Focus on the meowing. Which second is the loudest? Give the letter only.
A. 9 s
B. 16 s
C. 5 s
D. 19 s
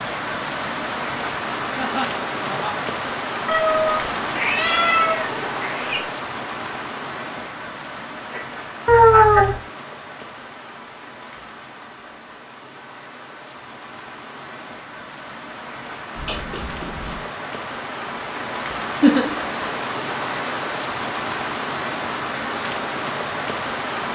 A.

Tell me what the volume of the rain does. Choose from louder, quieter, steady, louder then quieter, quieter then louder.
quieter then louder.